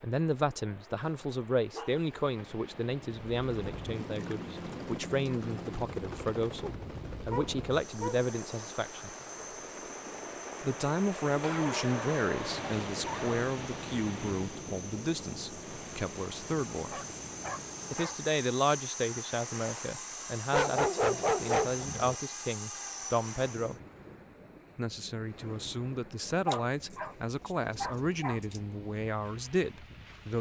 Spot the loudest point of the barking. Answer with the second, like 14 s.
21 s.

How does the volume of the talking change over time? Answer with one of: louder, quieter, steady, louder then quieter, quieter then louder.
steady.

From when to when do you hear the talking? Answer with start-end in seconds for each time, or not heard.
0.0-9.1, 10.6-17.0, 17.9-23.8, 24.8-30.3.